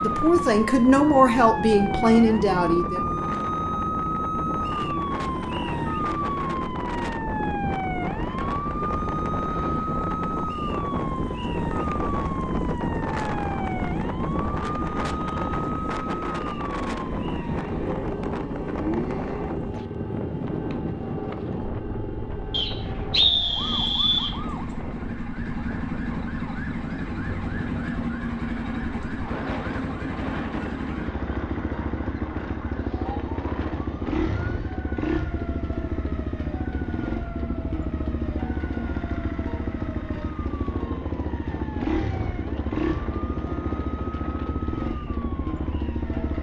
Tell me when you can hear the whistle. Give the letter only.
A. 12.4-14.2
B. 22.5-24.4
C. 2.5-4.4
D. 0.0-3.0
B.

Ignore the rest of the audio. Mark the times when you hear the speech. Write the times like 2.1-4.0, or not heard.
0.0-3.0.